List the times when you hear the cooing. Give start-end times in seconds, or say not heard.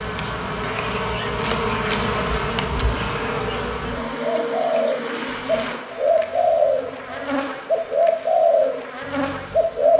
4.0-9.9.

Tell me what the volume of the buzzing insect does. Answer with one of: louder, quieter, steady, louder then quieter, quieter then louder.
quieter.